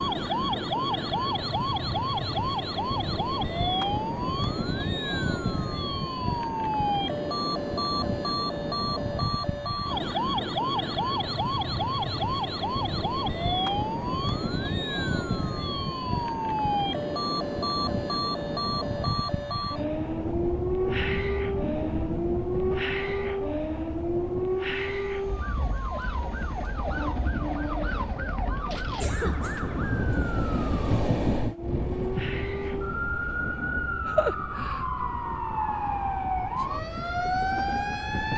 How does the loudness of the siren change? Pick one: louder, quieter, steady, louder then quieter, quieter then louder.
steady.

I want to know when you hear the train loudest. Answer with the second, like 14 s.
31 s.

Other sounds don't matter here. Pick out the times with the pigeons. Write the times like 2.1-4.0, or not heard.
not heard.